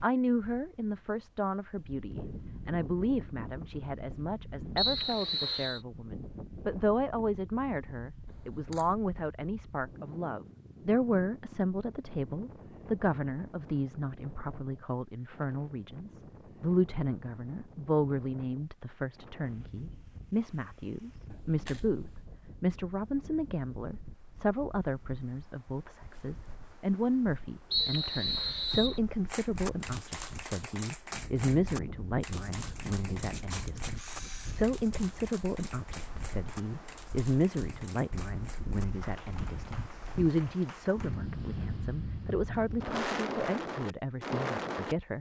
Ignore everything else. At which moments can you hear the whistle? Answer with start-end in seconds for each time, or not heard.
4.8-5.8, 27.7-29.0.